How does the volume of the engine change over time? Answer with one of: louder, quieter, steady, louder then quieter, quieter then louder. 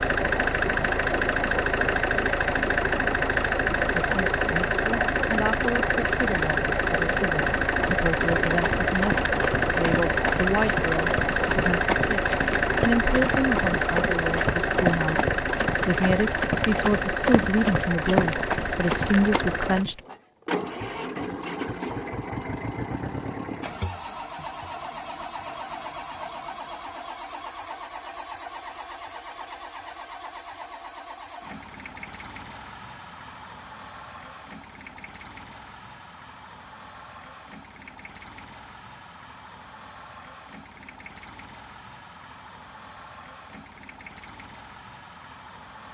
quieter.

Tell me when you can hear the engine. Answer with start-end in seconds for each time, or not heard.
0.0-45.8.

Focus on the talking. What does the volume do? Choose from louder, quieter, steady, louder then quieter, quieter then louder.
louder.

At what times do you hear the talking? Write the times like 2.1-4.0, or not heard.
3.8-20.0.